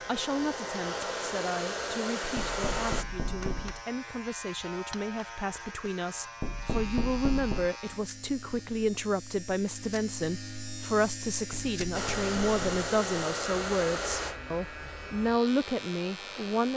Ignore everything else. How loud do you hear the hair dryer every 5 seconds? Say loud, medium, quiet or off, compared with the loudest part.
loud, off, loud, quiet.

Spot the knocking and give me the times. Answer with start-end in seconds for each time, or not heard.
2.4-3.9, 6.4-7.7, 11.5-12.8.